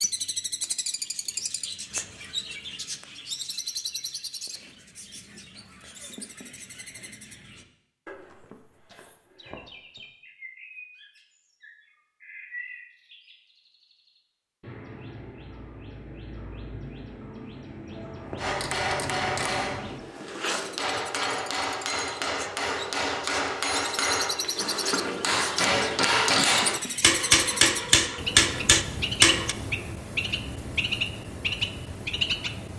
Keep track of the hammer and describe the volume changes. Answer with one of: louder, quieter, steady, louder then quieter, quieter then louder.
louder.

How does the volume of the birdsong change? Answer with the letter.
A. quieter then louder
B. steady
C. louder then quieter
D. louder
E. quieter
A.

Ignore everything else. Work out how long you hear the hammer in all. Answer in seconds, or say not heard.
11 s.